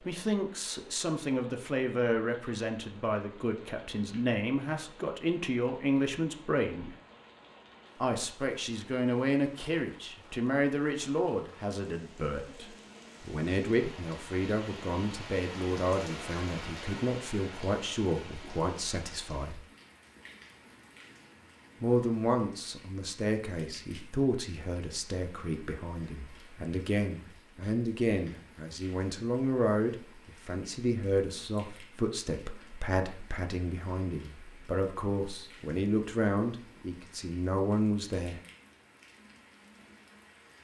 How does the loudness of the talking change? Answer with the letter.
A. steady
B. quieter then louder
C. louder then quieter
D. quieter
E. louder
A.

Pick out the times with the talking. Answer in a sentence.
The talking can be heard from 0.1 to 7.0 s, from 8.0 to 19.6 s and from 21.8 to 38.4 s.